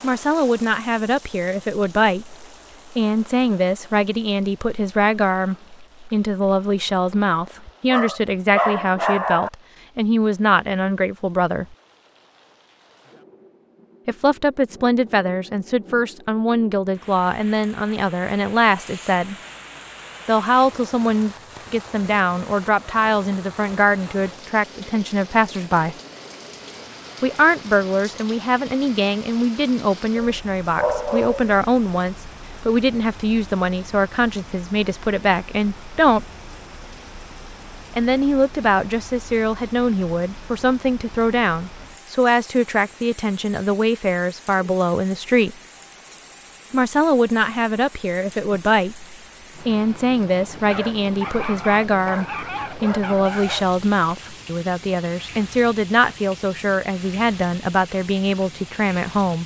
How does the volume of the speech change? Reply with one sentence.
The volume of the speech stays about the same.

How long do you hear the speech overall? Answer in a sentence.
The speech can be heard for 52 seconds in total.